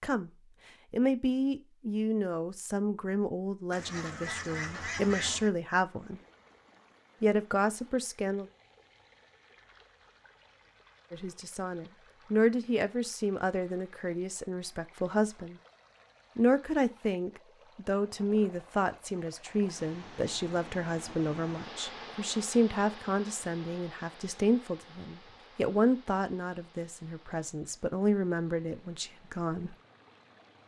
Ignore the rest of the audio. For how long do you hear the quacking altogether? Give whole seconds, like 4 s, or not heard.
2 s.